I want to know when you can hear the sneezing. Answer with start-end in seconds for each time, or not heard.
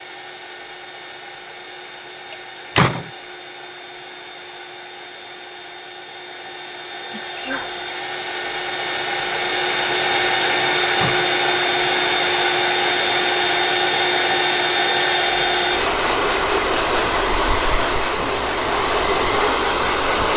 7.1-7.7.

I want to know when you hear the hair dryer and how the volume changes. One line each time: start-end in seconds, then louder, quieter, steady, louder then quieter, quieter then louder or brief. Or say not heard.
0.0-20.3 louder.